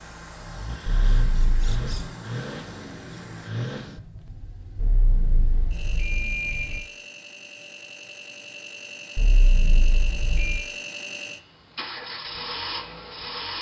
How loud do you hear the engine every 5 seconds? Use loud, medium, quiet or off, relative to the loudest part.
loud, medium, loud.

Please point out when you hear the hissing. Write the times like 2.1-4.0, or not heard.
0.0-3.5.